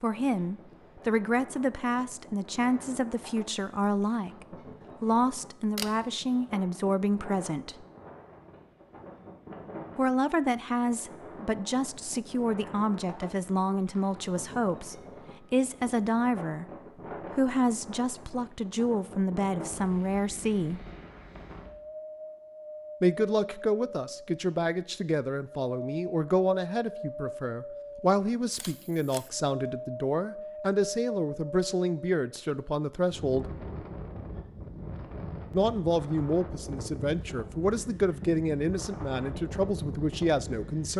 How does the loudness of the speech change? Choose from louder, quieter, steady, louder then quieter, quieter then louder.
steady.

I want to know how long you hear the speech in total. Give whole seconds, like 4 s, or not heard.
34 s.